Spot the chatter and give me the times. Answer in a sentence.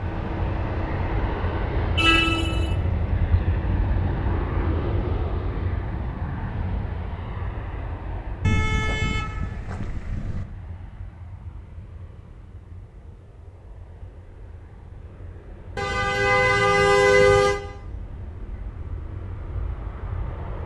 The chatter can't be heard in this clip.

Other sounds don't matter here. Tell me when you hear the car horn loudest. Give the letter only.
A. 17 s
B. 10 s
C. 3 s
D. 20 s
A.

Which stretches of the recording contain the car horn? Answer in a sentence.
You can hear the car horn from 1.9 to 3.4 s, from 8.4 to 10.4 s and from 15.8 to 17.6 s.